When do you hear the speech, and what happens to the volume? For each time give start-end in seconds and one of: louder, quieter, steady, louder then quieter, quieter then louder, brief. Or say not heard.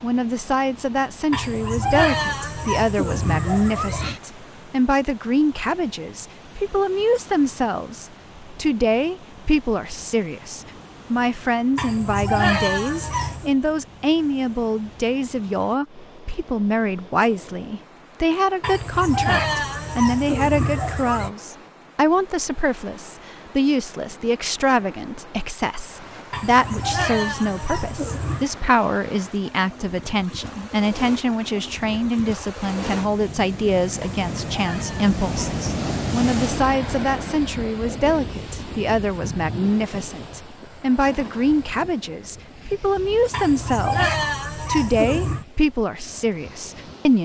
0.0-47.1 steady.